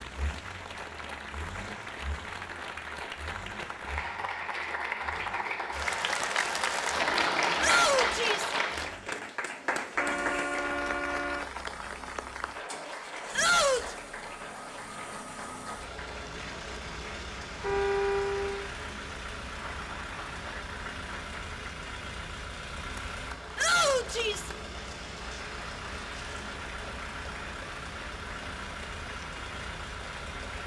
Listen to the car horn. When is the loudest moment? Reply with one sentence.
The volume of the car horn peaks at 18 seconds.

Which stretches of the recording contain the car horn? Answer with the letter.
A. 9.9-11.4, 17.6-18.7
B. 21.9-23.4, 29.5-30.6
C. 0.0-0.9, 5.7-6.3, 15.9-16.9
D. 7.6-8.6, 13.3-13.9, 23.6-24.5
A.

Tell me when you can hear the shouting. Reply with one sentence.
The shouting can be heard from 7.6 to 8.6 s, from 13.3 to 13.9 s and from 23.6 to 24.5 s.